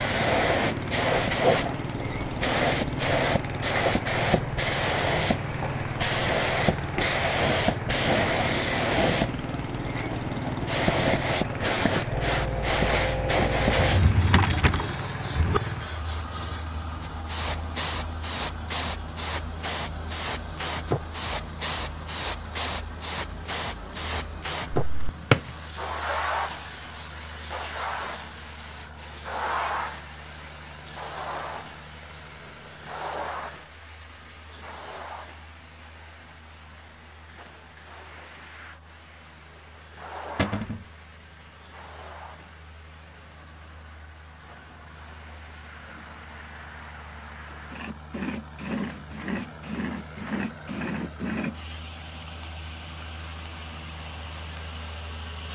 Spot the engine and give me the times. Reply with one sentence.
You can hear the engine from 0.0 to 55.4 s.